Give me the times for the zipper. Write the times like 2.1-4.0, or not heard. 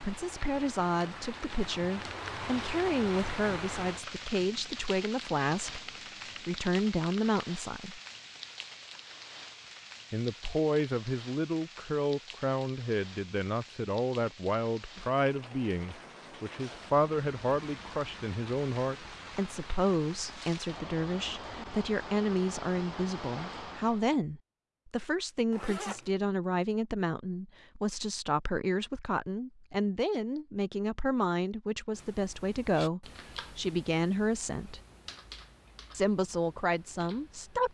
25.5-26.1.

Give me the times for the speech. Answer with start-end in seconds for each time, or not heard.
0.0-8.0, 10.1-34.8, 35.9-37.6.